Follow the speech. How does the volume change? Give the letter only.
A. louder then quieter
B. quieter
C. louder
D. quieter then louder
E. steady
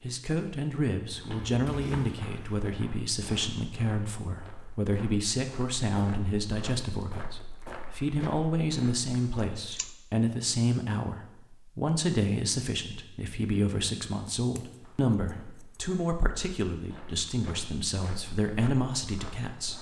E.